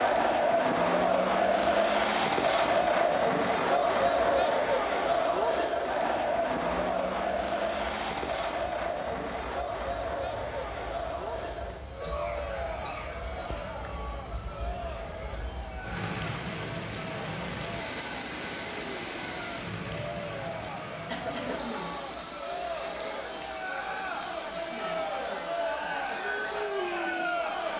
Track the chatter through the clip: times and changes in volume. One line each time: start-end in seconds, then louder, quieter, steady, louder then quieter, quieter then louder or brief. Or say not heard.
0.0-27.7 quieter then louder.